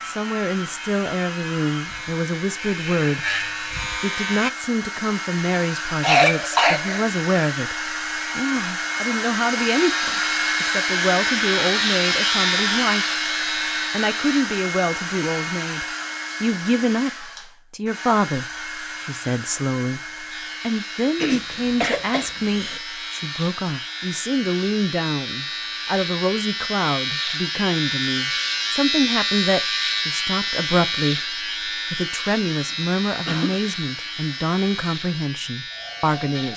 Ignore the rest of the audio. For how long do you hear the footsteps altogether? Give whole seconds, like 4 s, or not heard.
not heard.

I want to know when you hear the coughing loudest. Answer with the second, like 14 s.
6 s.